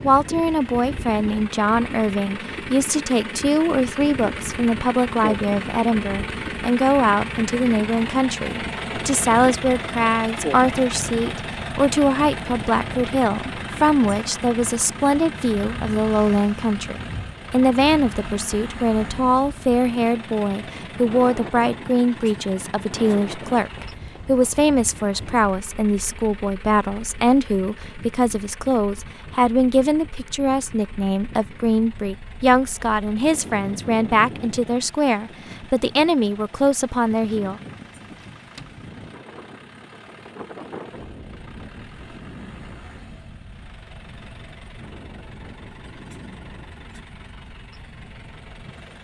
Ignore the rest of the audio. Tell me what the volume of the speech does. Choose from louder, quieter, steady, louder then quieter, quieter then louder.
steady.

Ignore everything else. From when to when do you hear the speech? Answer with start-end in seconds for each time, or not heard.
0.0-37.6.